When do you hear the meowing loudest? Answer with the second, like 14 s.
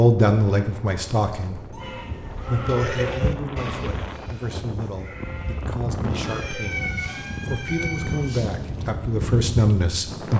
7 s.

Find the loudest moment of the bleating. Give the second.
3 s.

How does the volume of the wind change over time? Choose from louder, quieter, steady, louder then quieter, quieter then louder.
louder.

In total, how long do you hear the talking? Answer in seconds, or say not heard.
10 s.